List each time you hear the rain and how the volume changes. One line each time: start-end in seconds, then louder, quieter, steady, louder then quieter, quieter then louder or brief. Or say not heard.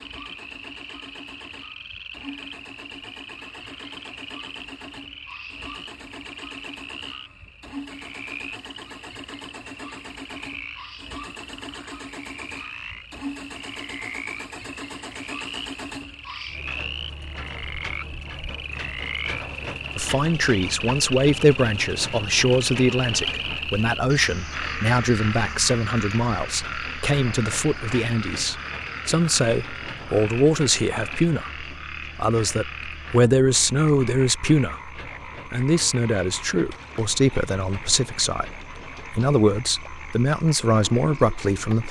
not heard.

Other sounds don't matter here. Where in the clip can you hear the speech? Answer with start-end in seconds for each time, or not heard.
19.9-41.8.